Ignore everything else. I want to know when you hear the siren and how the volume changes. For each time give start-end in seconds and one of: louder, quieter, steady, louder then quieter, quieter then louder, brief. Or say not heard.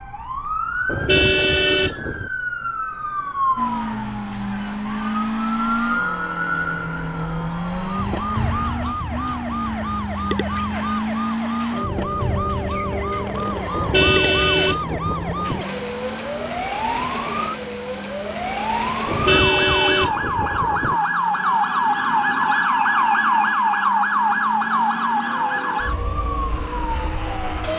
0.0-27.7 louder.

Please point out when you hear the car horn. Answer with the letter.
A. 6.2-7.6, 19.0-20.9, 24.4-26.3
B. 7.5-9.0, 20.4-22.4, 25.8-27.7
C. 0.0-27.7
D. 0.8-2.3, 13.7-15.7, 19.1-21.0
D.